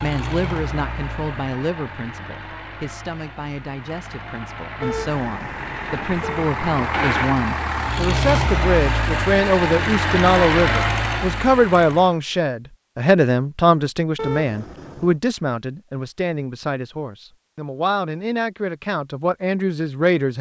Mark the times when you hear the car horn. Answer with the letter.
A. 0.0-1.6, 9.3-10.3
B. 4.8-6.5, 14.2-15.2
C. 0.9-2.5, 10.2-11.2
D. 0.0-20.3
B.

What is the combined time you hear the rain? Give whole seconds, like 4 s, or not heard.
not heard.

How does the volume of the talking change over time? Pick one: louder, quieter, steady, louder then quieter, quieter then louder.
louder then quieter.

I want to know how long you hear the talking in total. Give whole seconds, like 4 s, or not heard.
20 s.